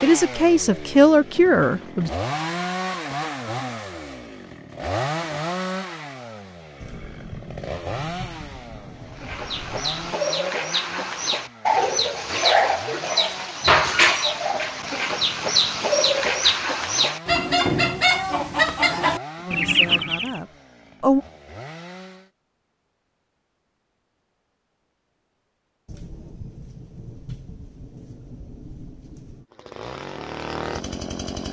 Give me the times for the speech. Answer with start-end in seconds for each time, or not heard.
0.0-2.1, 19.4-21.2.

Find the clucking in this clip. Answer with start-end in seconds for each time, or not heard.
9.1-20.4.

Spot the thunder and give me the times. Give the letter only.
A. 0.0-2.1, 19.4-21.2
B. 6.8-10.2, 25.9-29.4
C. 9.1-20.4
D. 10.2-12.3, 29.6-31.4
B.